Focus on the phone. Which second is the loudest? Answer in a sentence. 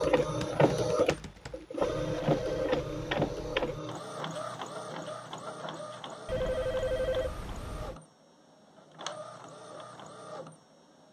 The volume of the phone peaks at 7 seconds.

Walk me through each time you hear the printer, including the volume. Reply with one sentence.
The printer can be heard from 0.0 to 11.0 s, getting quieter.